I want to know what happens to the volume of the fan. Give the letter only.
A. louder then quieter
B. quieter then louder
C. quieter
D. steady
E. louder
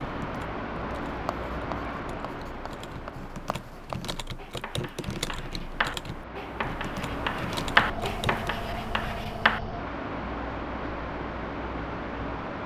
B.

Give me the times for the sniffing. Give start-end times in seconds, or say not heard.
not heard.